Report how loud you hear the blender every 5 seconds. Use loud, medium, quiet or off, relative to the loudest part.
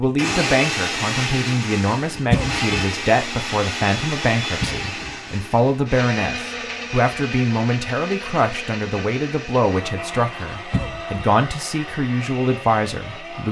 loud, medium, medium.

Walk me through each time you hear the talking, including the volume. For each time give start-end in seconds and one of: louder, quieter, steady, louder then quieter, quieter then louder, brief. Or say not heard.
0.0-13.4 steady.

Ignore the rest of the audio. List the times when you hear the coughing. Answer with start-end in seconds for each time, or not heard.
2.3-2.8, 4.6-5.2, 10.7-11.2.